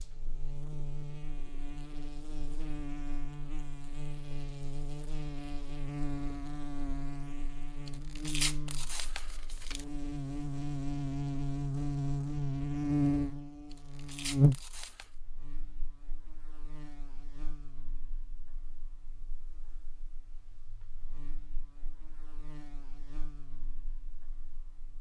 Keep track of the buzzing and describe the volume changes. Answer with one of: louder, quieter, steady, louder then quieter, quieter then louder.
louder then quieter.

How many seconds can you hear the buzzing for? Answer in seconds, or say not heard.
25 s.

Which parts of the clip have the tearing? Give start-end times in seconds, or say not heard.
7.8-9.8, 13.7-15.1.